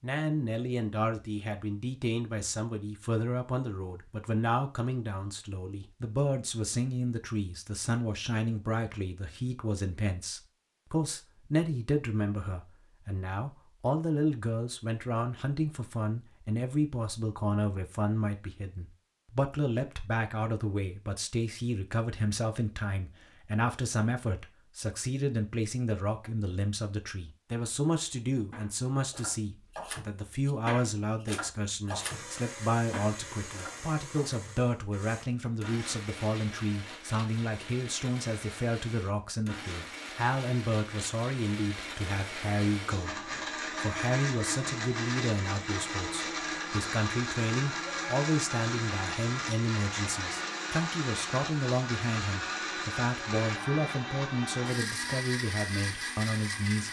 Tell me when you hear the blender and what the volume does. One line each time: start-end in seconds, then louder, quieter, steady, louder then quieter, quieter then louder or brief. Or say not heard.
31.9-56.8 louder.